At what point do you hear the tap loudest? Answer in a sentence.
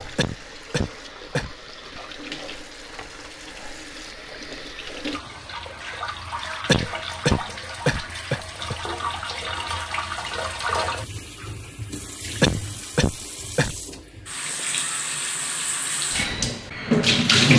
The loudest moment of the tap is at 17 seconds.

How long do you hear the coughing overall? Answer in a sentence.
You can hear the coughing for 5 seconds altogether.